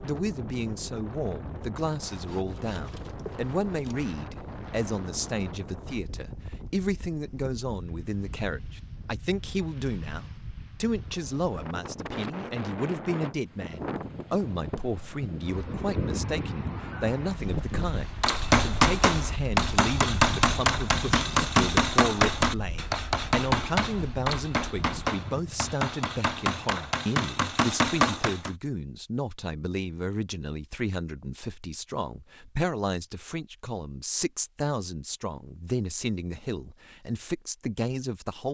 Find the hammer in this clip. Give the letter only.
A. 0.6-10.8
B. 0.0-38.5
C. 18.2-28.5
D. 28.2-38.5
C.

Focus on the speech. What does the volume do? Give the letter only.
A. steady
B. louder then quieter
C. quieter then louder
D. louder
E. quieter
A.